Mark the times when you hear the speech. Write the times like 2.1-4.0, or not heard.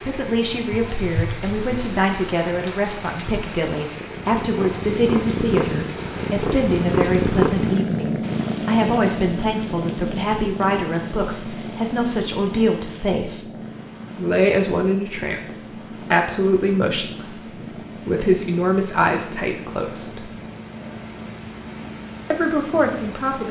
0.0-13.6, 14.2-20.3, 22.3-23.4.